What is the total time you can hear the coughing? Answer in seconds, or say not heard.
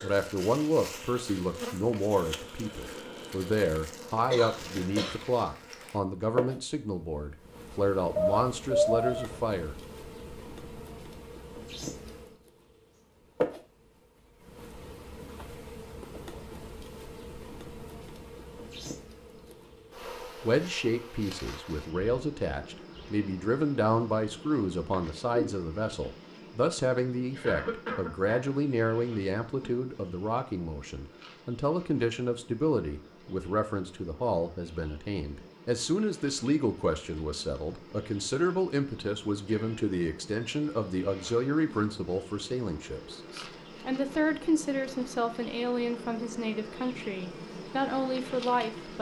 2 s.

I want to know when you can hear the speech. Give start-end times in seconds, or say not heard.
0.0-9.8, 20.4-48.9.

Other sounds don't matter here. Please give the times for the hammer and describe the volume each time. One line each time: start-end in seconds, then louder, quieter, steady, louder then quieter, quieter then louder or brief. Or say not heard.
not heard.